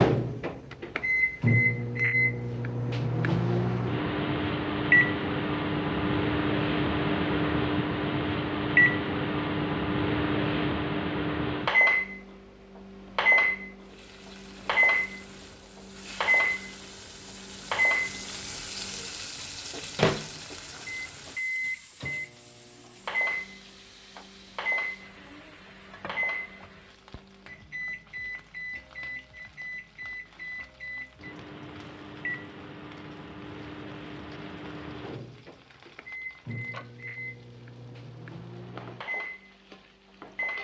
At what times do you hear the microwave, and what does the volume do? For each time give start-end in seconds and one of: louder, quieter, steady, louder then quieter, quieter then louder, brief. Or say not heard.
0.0-40.5 quieter.